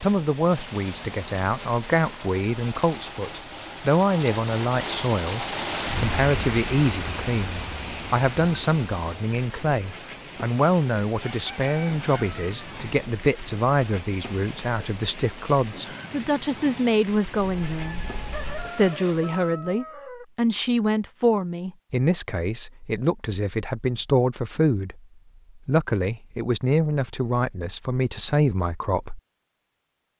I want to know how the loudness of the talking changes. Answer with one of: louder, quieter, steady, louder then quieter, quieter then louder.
steady.